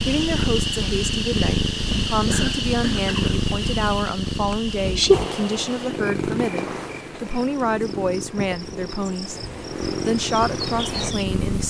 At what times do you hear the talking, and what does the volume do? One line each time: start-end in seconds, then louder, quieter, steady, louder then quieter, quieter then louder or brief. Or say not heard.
0.0-9.4 steady
10.1-11.6 brief.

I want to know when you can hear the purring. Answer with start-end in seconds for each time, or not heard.
0.0-11.6.